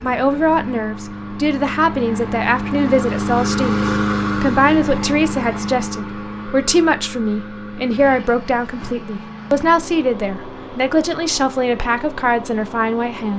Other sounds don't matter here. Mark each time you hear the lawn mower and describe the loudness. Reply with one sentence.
You can hear the lawn mower from 0.0 to 13.3 s, getting louder then quieter.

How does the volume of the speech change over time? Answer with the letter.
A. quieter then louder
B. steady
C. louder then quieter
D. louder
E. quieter
B.